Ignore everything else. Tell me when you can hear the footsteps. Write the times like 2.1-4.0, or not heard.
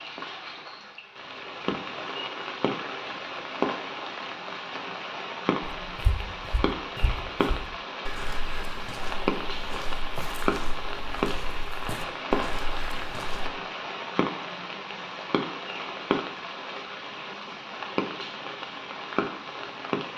5.8-13.5.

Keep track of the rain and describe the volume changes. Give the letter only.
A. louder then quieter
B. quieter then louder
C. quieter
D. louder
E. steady
E.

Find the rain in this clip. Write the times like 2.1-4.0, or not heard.
0.0-20.1.